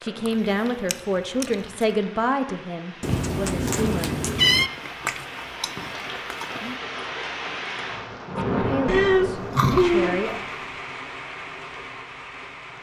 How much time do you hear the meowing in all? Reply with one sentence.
The meowing can be heard for 3 seconds in total.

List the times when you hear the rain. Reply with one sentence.
The rain can be heard from 0.0 to 12.7 s.